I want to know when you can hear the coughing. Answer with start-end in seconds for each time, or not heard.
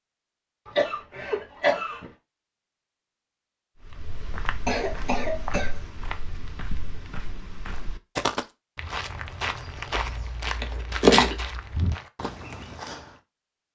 0.7-2.1, 4.7-5.8, 10.6-11.4.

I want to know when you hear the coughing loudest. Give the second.
11 s.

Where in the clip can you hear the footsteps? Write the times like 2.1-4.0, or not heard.
3.9-13.2.